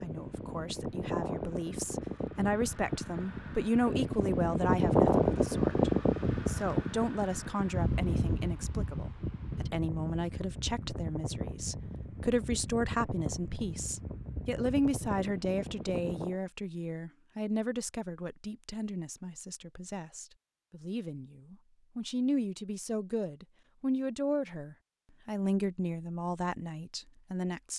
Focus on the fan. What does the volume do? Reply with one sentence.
The loudness of the fan goes up, then down.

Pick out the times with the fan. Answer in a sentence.
You can hear the fan from 0.0 to 16.4 s.